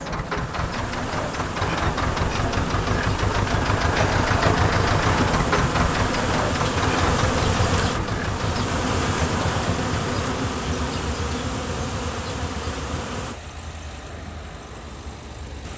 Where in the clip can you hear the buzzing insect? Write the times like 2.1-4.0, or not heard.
0.0-13.4.